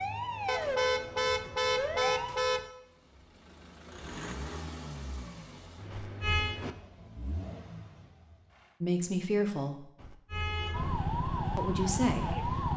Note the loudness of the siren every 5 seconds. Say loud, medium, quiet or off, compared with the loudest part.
loud, off, loud.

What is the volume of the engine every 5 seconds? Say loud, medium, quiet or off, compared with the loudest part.
loud, loud, off.